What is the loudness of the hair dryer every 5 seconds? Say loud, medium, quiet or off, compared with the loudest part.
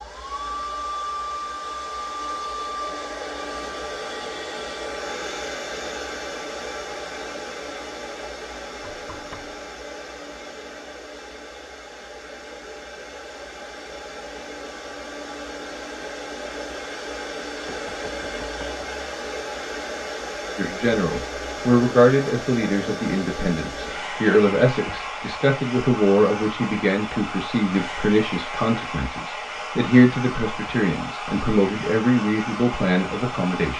loud, loud, medium, loud, loud, loud, loud.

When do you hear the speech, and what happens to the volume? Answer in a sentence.
You can hear the speech from 20.6 to 33.7 s, at a steady volume.